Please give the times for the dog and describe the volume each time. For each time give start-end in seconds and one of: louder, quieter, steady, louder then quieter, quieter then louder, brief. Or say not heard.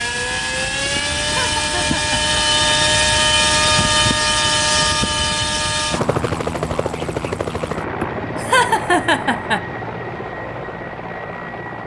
not heard.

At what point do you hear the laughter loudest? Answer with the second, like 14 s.
9 s.